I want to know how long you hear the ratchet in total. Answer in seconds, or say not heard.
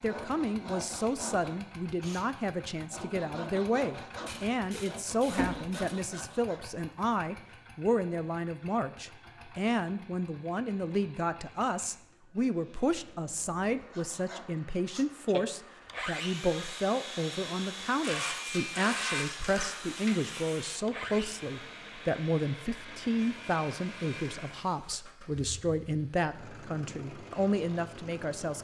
4 s.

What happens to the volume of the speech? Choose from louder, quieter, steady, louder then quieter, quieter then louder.
steady.